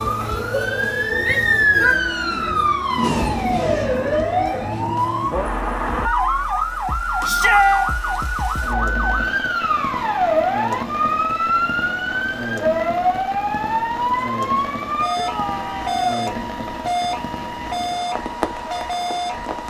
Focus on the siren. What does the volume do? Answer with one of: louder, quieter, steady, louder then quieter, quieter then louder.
quieter.